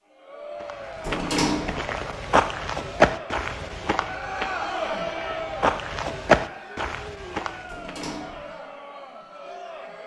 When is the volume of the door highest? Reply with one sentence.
The volume of the door peaks at 1 second.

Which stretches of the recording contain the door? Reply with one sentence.
You can hear the door from 1.0 to 1.9 s and from 7.7 to 8.6 s.